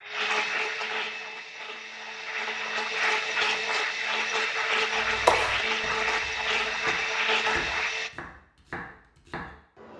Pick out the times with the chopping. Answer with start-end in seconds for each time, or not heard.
5.0-9.9.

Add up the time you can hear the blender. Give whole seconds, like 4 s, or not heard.
8 s.